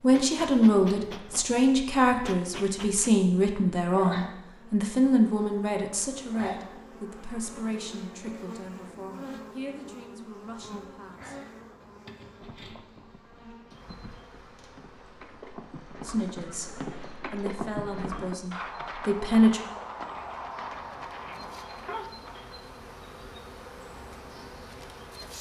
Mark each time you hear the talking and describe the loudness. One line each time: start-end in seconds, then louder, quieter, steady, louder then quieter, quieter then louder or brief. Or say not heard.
0.0-11.3 quieter
16.1-16.7 brief
17.3-19.6 brief.